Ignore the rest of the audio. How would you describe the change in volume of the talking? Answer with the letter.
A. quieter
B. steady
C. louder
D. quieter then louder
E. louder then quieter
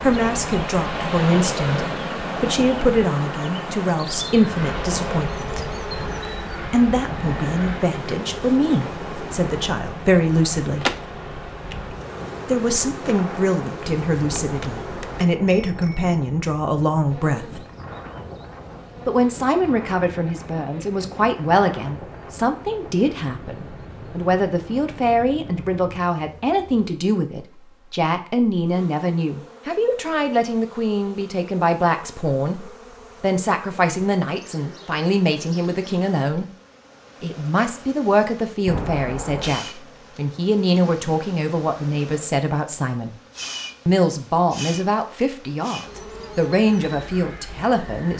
B.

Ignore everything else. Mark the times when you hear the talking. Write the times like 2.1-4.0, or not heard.
0.0-5.6, 6.7-10.8, 12.4-17.6, 19.1-36.5, 37.2-43.1, 43.9-48.1.